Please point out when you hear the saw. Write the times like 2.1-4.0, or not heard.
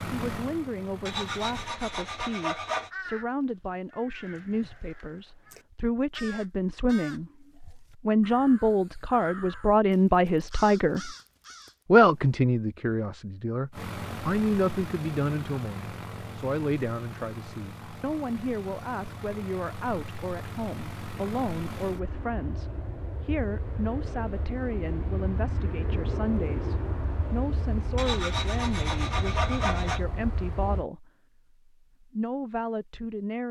1.1-2.9, 27.9-30.0.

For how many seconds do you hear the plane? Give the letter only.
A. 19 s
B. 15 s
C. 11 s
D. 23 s
A.